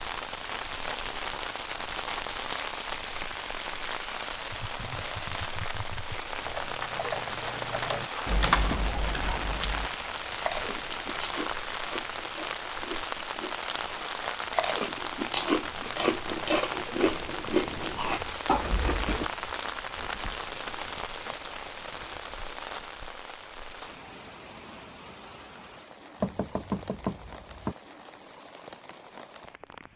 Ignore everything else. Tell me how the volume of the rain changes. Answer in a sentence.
The volume of the rain goes down.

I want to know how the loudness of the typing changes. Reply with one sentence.
The loudness of the typing goes up, then down.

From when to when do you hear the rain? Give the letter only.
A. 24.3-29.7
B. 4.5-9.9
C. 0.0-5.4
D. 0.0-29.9
D.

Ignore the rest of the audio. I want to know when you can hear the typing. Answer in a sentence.
You can hear the typing from 4.5 to 9.9 s.